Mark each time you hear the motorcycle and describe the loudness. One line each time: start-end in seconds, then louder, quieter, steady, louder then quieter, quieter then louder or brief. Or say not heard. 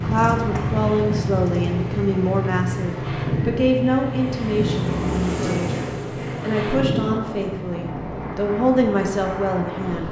0.0-10.0 quieter.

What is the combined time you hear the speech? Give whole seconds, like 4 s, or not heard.
10 s.